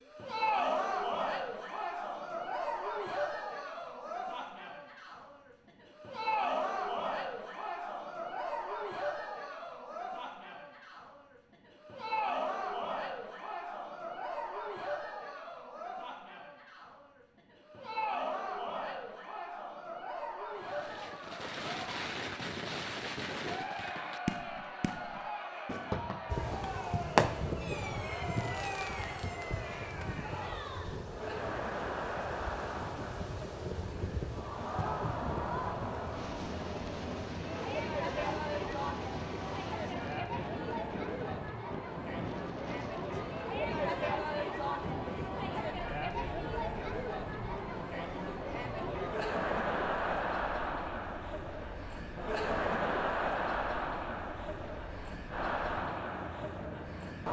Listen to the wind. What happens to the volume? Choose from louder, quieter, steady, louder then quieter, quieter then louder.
quieter.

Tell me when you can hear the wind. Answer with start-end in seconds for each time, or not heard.
26.2-57.2.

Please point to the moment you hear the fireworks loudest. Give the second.
27 s.